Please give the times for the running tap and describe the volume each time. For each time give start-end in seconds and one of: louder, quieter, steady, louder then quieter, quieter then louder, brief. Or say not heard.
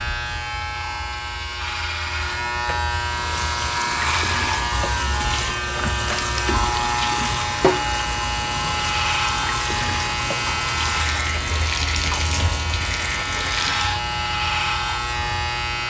3.1-13.9 steady.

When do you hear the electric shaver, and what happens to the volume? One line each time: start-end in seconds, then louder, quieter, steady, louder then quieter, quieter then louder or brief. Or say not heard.
0.0-15.8 steady.